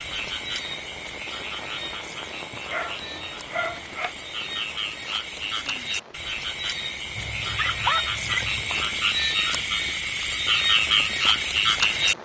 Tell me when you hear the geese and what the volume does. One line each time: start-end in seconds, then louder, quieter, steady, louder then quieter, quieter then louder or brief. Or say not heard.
not heard.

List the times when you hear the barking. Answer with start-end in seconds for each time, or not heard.
2.5-4.2, 7.2-8.7.